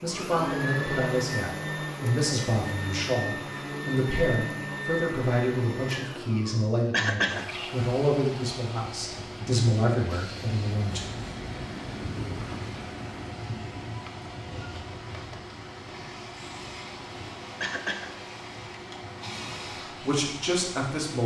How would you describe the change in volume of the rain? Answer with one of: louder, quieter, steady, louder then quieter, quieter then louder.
quieter.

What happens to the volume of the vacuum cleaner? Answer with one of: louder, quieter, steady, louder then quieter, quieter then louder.
quieter.